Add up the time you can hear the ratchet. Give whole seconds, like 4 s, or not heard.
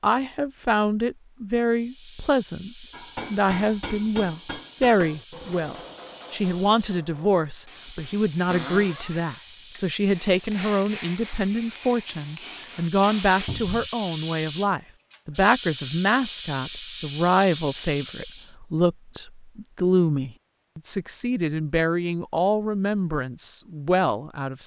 not heard.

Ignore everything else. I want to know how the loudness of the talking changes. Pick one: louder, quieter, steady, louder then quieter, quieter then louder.
steady.